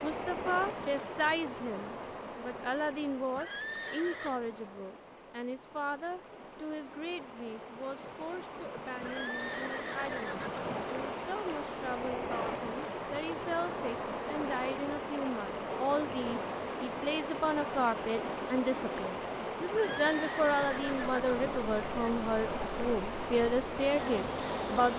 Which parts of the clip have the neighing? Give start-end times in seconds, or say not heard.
3.3-4.4, 9.0-10.9, 19.7-21.6.